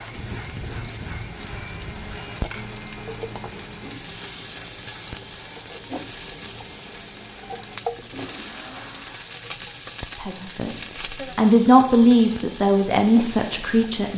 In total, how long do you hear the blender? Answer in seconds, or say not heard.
9 s.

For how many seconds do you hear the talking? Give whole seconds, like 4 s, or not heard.
4 s.